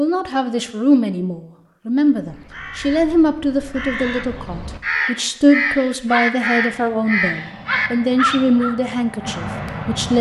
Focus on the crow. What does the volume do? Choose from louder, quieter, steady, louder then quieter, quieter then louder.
louder.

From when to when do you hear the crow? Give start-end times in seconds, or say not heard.
2.1-8.8.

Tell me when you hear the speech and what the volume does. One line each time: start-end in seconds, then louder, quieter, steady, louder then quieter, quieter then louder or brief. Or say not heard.
0.0-10.1 steady.